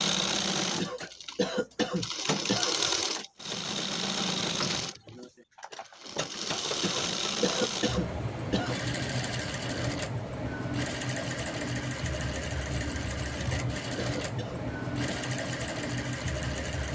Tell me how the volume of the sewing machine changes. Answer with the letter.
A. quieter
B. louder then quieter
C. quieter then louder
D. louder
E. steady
E.